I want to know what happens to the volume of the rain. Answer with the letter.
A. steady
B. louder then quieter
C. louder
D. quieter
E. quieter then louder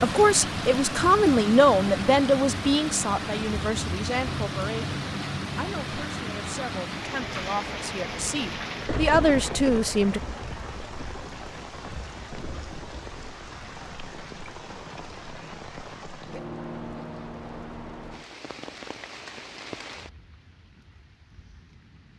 D.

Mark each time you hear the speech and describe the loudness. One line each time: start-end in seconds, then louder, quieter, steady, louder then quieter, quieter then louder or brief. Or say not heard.
0.0-10.2 quieter then louder.